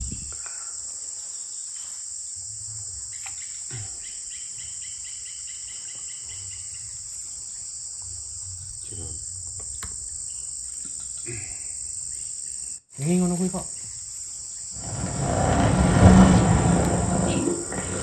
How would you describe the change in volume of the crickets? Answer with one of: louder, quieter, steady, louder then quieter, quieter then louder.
louder then quieter.